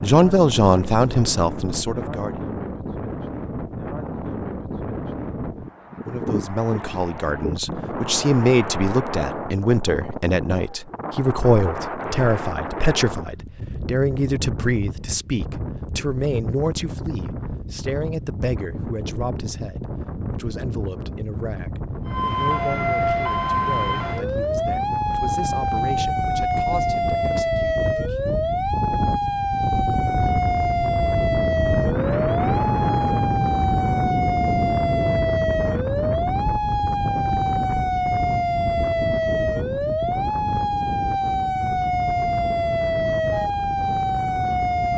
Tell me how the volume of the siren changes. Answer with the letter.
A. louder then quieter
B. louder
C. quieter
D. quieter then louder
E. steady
E.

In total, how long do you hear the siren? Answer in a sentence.
You can hear the siren for 23 seconds altogether.